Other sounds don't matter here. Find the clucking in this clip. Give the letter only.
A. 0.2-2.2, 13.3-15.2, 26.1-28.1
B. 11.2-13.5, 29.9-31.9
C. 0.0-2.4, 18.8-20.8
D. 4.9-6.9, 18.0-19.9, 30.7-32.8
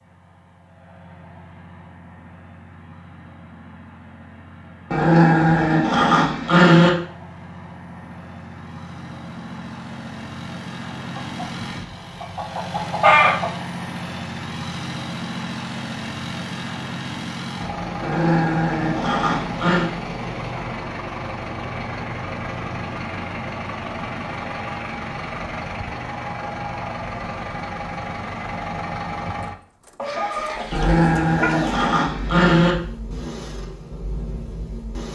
B.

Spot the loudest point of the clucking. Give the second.
13 s.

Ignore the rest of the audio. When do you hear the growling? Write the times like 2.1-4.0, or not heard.
4.9-6.9, 18.0-19.9, 30.7-32.8.